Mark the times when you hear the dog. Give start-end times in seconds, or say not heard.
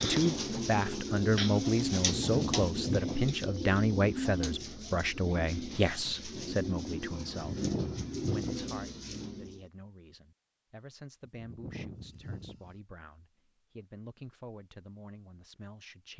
not heard.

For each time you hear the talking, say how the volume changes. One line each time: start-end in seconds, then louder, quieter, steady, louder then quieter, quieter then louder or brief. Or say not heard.
0.0-16.1 quieter.